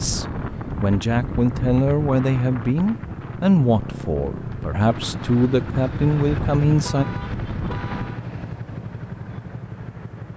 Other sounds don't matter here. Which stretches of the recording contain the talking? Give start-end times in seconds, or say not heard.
0.0-7.0.